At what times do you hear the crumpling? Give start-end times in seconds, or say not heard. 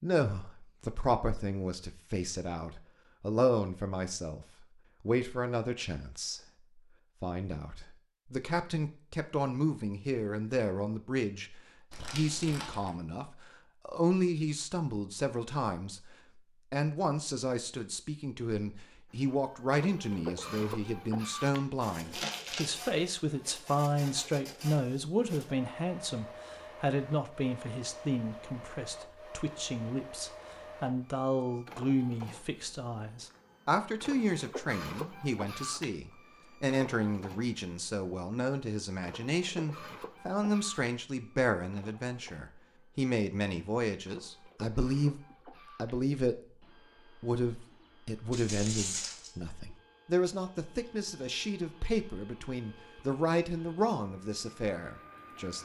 11.9-12.9, 22.1-22.7, 48.3-49.3.